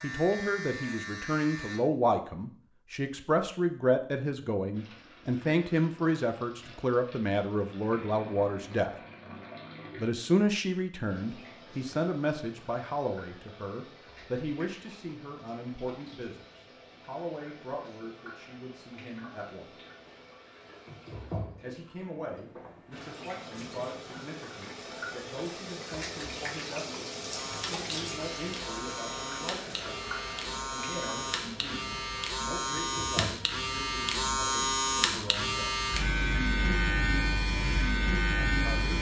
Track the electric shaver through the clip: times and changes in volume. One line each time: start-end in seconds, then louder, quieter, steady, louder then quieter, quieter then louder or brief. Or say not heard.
0.0-1.8 brief
27.3-38.9 louder.